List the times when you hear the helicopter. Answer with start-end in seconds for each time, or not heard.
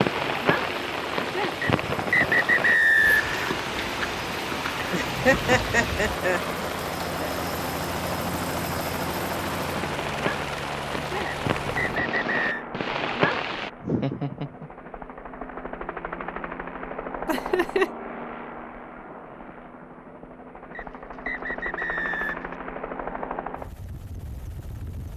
0.0-25.1.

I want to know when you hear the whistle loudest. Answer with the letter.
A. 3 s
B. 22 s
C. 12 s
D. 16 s
A.